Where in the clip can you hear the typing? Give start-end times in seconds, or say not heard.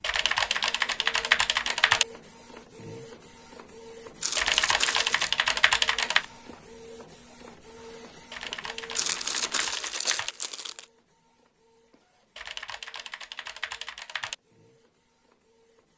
0.0-2.0, 4.3-6.2, 8.3-10.3, 12.3-14.3.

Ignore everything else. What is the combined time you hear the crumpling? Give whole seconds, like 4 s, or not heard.
3 s.